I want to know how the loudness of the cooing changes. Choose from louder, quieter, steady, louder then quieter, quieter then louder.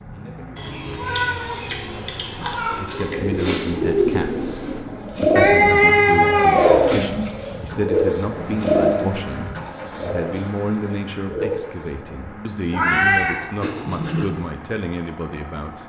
quieter.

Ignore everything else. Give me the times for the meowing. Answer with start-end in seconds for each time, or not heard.
0.6-3.1, 5.3-7.0, 12.7-14.3.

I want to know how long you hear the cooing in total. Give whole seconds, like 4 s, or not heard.
9 s.